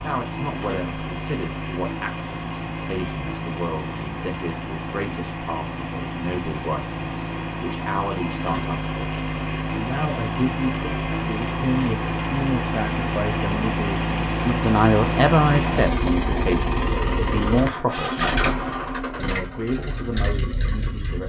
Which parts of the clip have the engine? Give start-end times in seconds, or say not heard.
0.0-21.2.